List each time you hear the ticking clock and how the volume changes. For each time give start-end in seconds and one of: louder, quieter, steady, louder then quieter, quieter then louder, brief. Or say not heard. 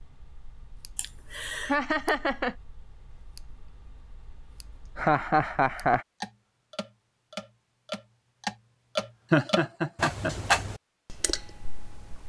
0.0-12.2 louder.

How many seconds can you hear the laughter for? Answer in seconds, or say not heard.
3 s.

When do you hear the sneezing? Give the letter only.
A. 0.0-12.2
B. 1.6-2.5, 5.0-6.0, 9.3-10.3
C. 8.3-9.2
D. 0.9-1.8
D.